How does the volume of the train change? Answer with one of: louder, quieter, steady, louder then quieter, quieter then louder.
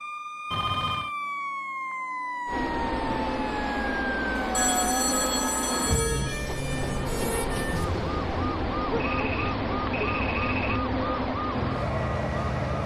steady.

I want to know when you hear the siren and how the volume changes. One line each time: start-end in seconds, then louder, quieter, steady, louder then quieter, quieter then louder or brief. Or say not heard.
0.0-12.8 steady.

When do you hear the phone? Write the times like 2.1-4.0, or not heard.
0.5-1.1, 4.5-6.5, 8.9-10.9.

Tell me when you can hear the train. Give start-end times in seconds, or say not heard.
2.5-12.8.